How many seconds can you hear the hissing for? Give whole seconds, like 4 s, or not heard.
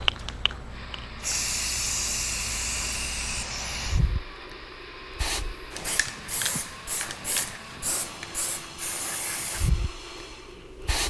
11 s.